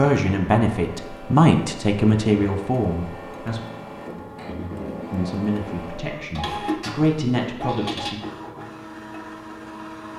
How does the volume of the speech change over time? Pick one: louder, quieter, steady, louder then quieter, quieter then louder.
quieter.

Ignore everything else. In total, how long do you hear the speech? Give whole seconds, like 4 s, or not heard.
7 s.